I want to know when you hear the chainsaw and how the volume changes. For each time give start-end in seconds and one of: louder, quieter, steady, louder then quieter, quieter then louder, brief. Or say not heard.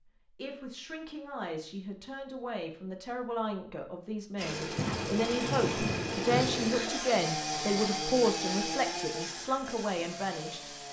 4.3-10.8 quieter.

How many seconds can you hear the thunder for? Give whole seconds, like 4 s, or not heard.
2 s.